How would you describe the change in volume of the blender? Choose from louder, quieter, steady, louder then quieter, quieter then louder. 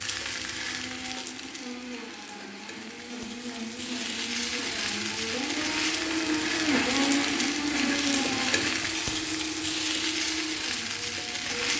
louder then quieter.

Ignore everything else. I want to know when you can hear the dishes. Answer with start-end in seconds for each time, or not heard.
not heard.